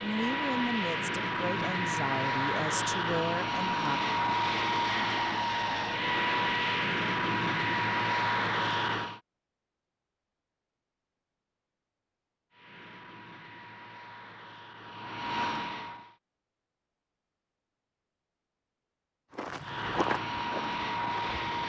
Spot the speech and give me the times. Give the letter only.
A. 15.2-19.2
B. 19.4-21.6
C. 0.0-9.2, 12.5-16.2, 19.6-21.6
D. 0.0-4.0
D.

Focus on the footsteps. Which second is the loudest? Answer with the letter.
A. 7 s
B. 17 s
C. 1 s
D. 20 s
D.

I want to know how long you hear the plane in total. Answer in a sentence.
The plane can be heard for 15 seconds in total.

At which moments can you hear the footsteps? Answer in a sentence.
You can hear the footsteps from 19.4 to 21.6 s.